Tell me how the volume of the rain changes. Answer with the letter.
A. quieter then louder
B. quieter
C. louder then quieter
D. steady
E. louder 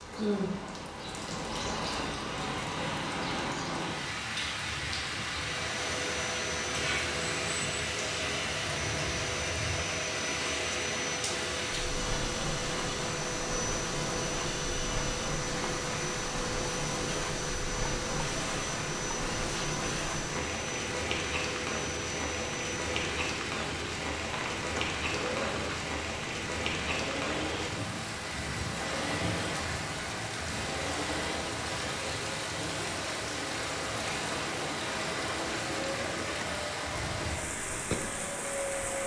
D.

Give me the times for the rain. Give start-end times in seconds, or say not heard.
0.0-39.0.